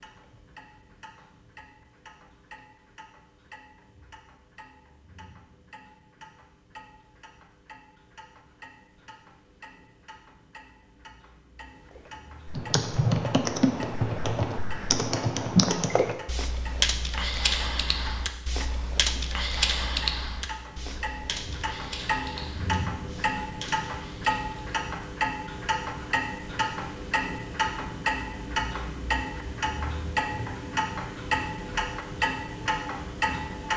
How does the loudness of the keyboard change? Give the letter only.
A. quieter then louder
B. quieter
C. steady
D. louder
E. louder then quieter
B.